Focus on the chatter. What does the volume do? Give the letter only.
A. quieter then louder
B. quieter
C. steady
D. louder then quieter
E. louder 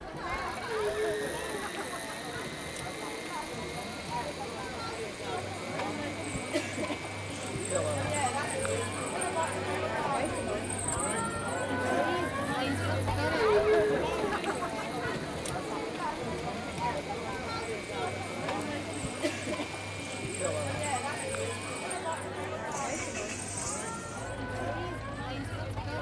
D.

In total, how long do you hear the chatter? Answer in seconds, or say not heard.
26 s.